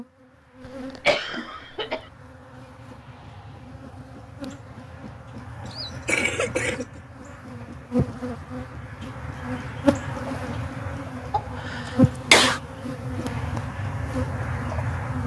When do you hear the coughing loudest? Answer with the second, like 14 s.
12 s.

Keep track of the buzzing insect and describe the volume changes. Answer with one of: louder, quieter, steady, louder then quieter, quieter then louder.
louder.